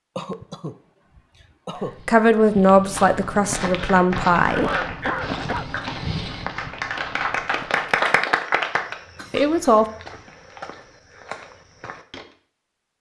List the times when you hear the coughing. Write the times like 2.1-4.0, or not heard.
0.1-1.9, 4.5-5.7, 9.2-9.8.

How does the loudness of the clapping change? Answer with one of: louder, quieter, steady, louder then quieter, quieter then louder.
louder.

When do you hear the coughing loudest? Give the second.
5 s.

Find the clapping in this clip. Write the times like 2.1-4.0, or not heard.
3.4-8.9.